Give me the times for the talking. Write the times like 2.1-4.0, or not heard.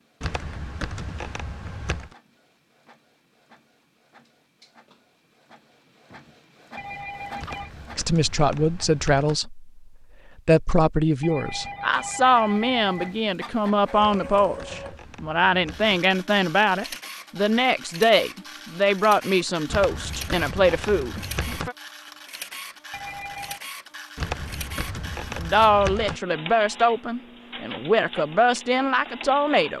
8.0-9.7, 10.4-21.8, 25.3-29.7.